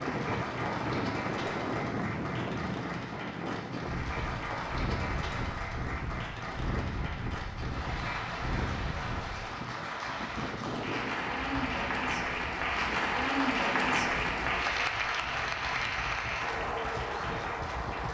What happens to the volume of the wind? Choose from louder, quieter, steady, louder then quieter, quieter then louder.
quieter.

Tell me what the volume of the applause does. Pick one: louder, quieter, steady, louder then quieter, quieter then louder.
louder.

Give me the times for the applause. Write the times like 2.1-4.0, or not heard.
0.0-18.1.